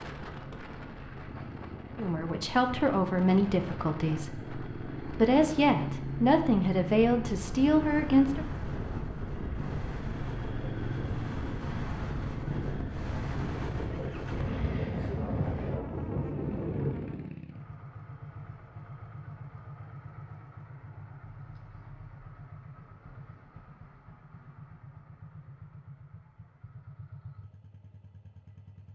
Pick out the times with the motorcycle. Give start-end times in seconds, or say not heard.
0.0-28.8.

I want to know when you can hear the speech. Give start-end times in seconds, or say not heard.
1.9-8.4.